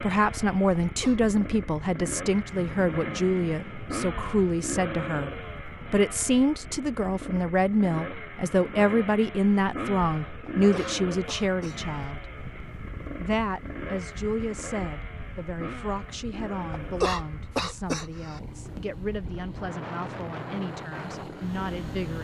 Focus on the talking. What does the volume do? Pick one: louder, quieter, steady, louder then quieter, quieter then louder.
quieter.